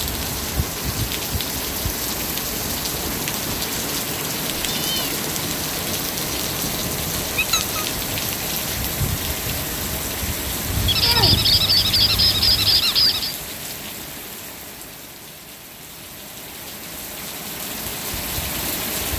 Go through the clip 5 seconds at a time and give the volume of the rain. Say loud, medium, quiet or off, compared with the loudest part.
loud, loud, loud, medium.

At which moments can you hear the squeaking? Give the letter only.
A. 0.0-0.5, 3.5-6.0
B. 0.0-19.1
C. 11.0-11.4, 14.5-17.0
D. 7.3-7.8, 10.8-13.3
D.